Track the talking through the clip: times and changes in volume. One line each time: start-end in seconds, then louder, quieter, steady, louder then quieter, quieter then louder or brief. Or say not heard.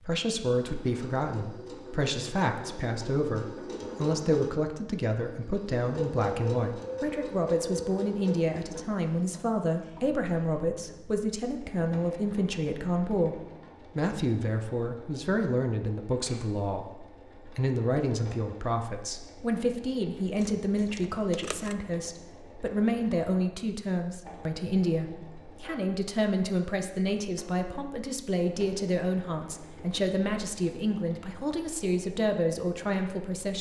0.0-33.5 steady.